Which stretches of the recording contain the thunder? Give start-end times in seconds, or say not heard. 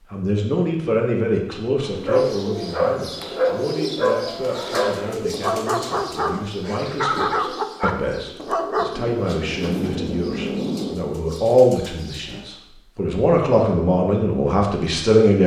8.9-10.9.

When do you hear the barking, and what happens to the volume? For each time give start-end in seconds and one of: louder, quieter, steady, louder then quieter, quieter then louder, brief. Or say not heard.
1.9-8.9 steady.